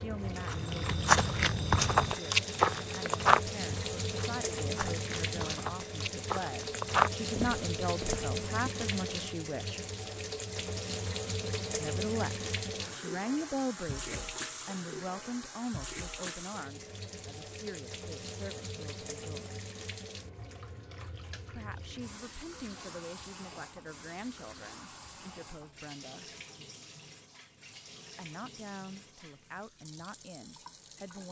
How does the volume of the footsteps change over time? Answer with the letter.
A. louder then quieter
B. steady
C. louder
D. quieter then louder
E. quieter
D.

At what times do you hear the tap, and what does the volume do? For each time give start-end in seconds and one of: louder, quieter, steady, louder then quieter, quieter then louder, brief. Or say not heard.
0.0-31.2 quieter.